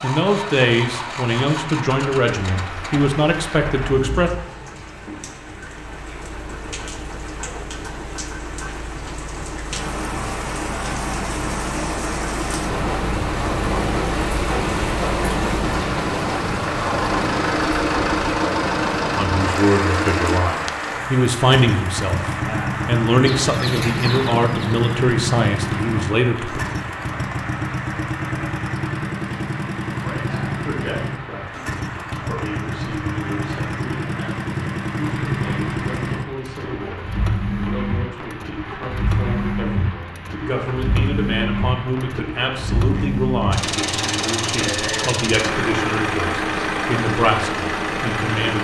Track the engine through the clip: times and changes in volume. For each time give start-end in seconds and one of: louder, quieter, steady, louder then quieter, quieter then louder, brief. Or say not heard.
0.0-48.5 louder.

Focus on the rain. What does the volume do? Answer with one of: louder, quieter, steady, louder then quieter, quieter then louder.
louder then quieter.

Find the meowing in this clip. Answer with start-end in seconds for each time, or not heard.
not heard.